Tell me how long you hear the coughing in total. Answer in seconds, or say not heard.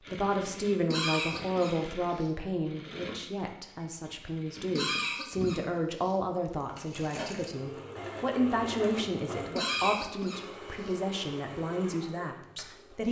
4 s.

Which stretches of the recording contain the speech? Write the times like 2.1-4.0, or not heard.
0.1-13.0.